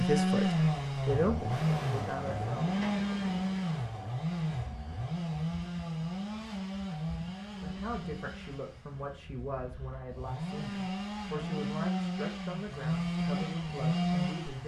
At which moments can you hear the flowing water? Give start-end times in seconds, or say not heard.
not heard.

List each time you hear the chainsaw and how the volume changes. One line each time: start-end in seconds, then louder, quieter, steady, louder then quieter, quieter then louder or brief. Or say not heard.
0.0-14.6 quieter then louder.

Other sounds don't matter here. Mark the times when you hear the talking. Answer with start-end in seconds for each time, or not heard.
0.0-2.7, 7.6-14.6.